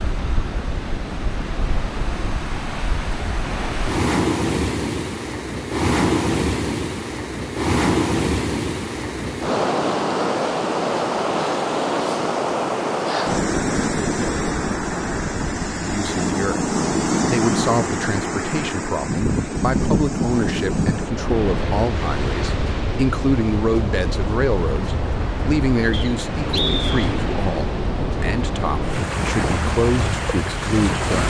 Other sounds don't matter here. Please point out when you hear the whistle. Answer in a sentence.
You can hear the whistle from 25.9 to 27.1 s.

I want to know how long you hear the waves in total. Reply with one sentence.
The waves can be heard for 31 seconds in total.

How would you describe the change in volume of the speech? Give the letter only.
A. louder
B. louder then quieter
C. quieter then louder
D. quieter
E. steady
E.